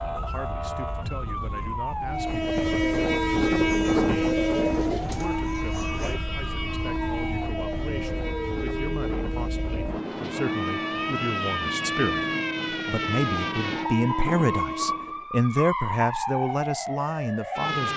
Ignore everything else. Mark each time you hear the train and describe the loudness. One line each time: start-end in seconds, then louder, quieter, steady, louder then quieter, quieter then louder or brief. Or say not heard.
2.1-15.2 quieter.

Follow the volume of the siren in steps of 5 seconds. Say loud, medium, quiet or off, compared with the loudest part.
loud, medium, loud, loud.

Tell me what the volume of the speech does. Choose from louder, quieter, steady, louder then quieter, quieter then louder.
louder.